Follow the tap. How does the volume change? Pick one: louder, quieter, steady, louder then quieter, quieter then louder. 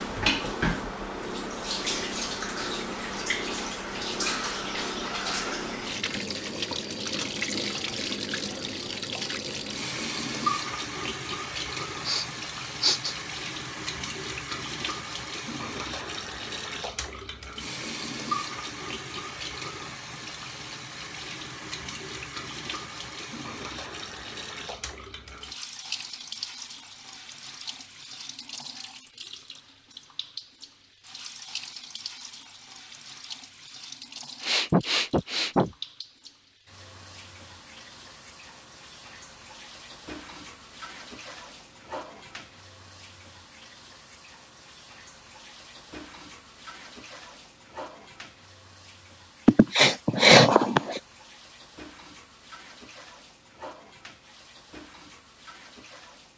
quieter.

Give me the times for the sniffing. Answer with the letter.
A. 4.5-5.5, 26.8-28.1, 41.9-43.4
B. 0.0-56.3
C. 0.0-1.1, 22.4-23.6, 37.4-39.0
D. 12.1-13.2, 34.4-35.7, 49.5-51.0
D.